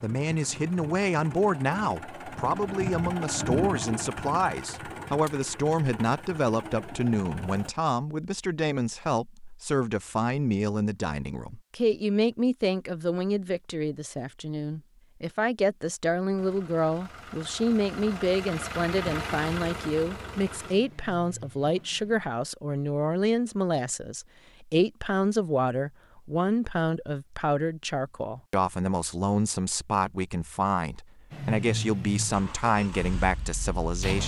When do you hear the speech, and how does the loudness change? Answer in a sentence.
You can hear the speech from 0.0 to 34.2 s, at a steady volume.